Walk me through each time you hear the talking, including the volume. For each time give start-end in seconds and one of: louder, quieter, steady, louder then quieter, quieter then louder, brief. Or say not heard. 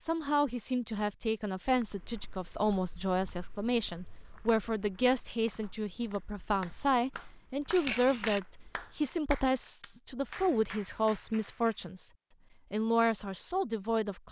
0.0-12.1 steady
12.7-14.2 brief.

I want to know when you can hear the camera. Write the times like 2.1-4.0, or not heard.
7.7-8.4.